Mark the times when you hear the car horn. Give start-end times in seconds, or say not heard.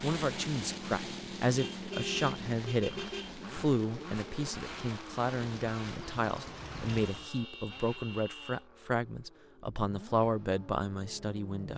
1.6-3.4, 7.0-8.7.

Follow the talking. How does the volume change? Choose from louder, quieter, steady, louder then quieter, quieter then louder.
steady.